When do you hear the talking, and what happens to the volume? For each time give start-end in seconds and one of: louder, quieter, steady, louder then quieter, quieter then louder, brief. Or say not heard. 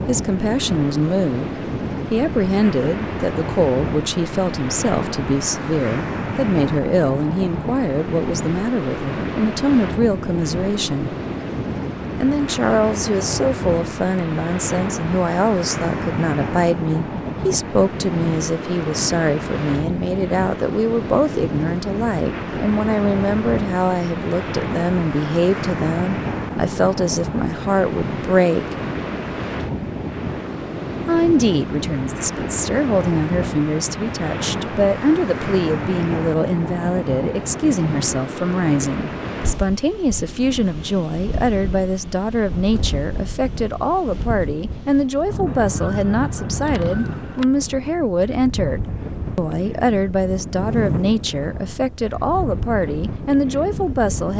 0.1-11.2 steady
12.2-28.8 steady
31.1-54.3 steady.